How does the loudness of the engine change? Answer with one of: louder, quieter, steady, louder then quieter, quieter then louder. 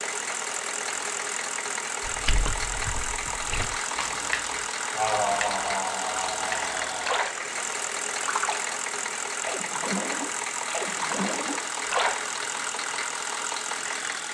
steady.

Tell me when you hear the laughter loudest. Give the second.
5 s.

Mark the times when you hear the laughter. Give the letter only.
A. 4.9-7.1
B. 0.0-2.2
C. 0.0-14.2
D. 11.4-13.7
A.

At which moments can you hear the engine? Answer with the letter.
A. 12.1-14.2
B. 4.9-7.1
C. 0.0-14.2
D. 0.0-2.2
C.